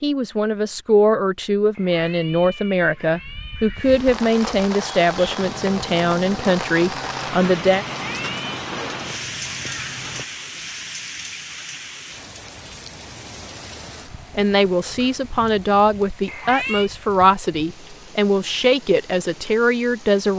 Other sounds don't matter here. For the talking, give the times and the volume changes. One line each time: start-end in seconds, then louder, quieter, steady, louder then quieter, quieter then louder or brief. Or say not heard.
0.0-7.8 steady
14.3-20.3 steady.